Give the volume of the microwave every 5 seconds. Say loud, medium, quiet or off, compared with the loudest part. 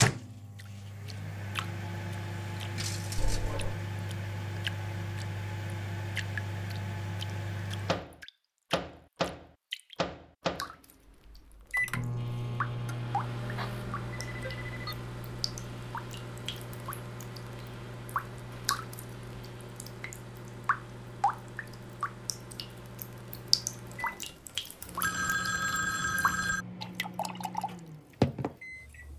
loud, loud, loud, medium, medium, medium.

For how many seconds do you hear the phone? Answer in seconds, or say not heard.
4 s.